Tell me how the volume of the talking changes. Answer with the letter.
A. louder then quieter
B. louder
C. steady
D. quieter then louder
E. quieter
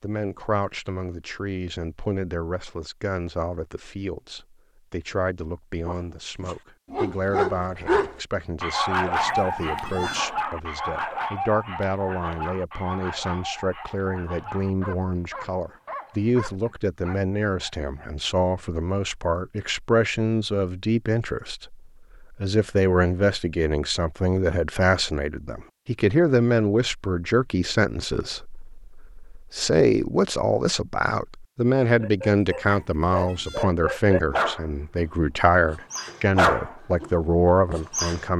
B.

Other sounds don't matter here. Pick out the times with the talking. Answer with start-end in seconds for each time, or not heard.
0.0-38.3.